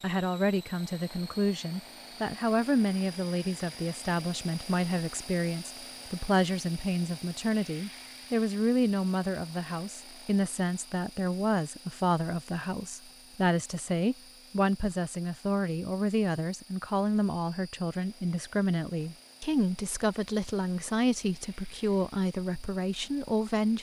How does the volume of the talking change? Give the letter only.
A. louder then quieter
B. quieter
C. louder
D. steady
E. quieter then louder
D.